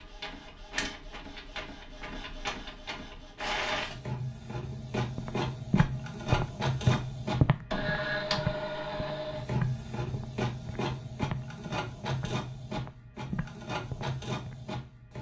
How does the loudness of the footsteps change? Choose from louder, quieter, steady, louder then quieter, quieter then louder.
quieter.